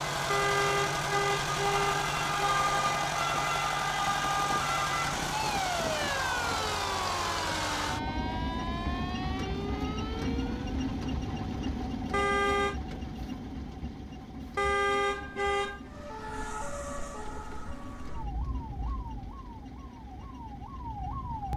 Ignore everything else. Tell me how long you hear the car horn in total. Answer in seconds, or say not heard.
5 s.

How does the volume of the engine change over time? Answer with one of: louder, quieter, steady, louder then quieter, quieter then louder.
quieter.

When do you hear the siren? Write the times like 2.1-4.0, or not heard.
0.0-10.7, 15.8-21.5.